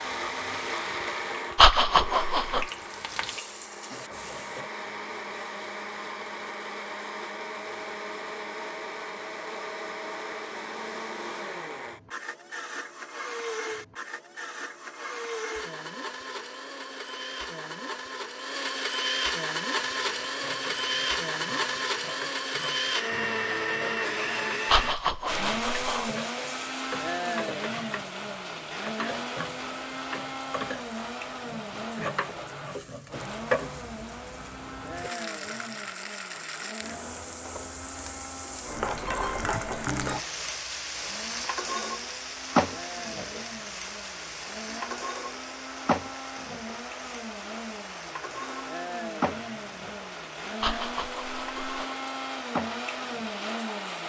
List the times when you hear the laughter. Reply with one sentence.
You can hear the laughter from 1.6 to 2.6 s, from 24.6 to 26.1 s and from 50.6 to 51.9 s.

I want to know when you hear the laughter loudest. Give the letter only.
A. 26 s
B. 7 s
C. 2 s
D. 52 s
C.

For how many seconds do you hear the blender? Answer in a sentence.
The blender can be heard for 54 seconds in total.